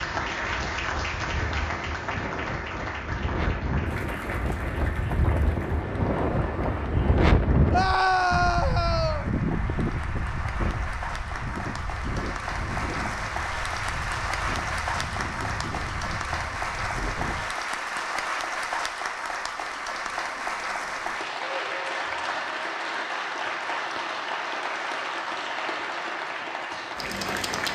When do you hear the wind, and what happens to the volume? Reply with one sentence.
The wind can be heard from 0.0 to 17.5 s, getting louder then quieter.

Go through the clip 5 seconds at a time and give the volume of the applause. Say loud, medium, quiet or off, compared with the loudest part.
loud, medium, loud, loud, loud, loud.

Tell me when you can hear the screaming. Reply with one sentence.
The screaming can be heard from 7.7 to 9.3 s.